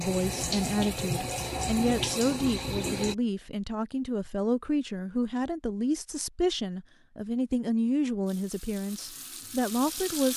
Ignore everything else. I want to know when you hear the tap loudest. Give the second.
2 s.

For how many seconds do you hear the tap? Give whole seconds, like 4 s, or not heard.
5 s.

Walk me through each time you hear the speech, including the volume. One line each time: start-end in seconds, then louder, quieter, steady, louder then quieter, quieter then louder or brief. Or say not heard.
0.0-10.3 steady.